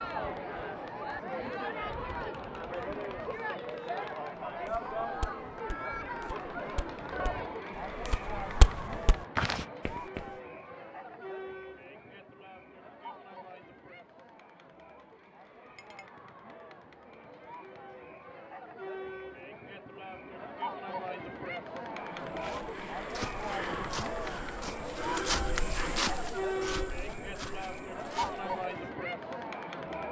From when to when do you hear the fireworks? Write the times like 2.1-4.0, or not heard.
not heard.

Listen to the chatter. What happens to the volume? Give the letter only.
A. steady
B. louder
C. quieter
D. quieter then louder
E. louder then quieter
D.